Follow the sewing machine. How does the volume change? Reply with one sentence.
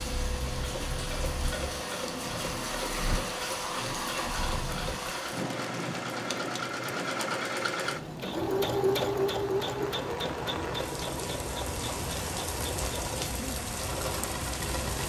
The volume of the sewing machine goes up, then down.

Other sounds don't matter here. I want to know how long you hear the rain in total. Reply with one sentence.
The rain can be heard for 15 seconds in total.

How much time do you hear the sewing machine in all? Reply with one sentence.
You can hear the sewing machine for 15 seconds altogether.